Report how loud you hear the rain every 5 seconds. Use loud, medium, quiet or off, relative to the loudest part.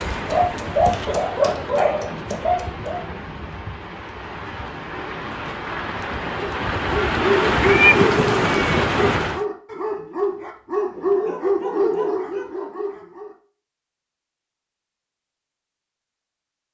medium, loud, off, off.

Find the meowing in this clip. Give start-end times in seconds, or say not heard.
7.6-8.9.